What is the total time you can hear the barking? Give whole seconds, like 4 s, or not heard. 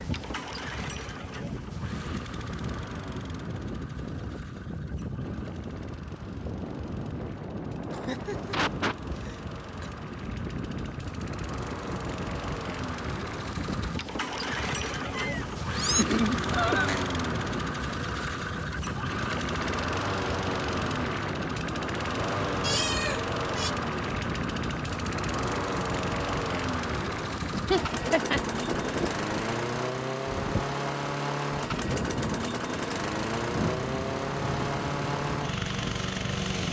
not heard.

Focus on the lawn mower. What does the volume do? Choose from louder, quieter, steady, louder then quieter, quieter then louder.
louder.